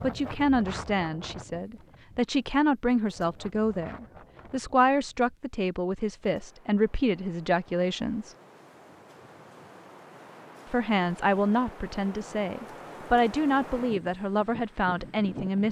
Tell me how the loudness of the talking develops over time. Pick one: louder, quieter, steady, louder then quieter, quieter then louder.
steady.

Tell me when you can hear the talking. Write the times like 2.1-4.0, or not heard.
0.0-8.3, 10.7-15.6.